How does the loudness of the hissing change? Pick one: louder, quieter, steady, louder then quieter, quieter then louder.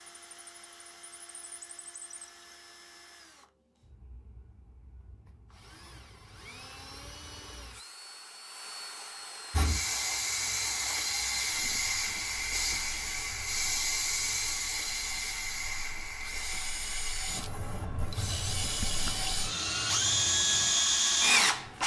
quieter.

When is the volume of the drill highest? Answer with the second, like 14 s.
21 s.